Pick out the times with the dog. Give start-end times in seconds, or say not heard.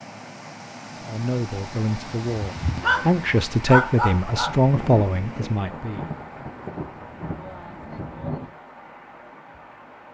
2.4-4.5.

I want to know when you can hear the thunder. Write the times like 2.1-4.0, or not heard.
4.3-8.6.